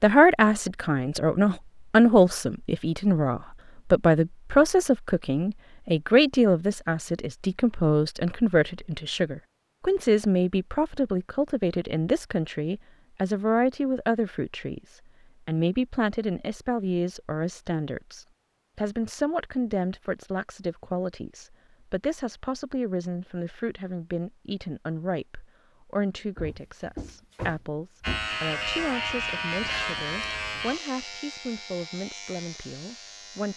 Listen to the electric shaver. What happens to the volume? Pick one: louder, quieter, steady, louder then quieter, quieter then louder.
quieter.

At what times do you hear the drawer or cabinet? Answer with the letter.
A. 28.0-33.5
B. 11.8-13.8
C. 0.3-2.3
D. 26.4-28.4
D.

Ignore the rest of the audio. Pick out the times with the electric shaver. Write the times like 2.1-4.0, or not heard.
28.0-33.5.